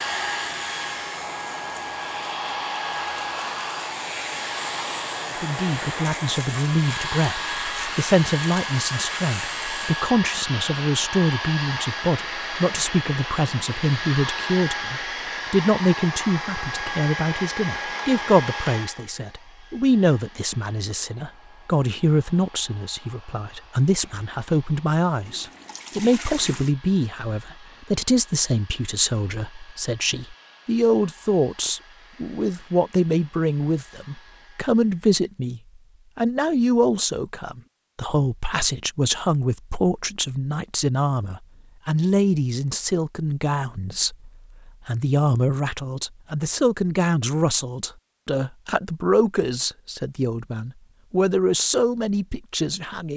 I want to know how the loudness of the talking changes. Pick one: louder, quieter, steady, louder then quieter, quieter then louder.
steady.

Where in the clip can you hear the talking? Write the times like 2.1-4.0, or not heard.
5.4-53.1.